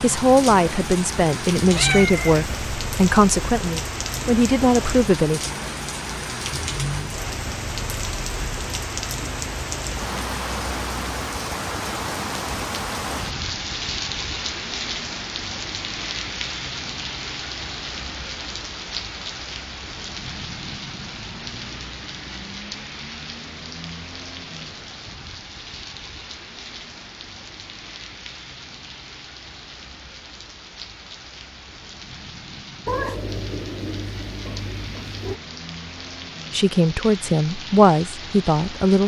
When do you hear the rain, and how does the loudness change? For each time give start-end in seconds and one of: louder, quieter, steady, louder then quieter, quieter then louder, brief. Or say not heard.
0.0-39.0 quieter.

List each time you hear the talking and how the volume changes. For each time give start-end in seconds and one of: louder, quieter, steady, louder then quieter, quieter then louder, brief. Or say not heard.
0.0-5.4 steady
36.5-39.0 brief.